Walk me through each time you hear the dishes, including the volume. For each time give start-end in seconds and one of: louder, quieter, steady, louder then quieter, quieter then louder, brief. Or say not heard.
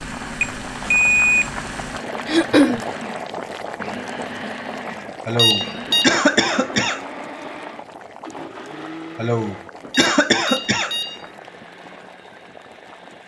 not heard.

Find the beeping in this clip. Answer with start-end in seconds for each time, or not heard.
0.4-1.5, 5.3-6.2, 9.9-11.3.